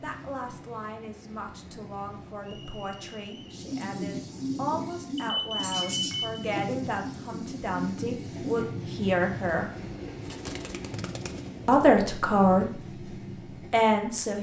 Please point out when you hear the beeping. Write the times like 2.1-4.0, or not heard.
5.2-6.5.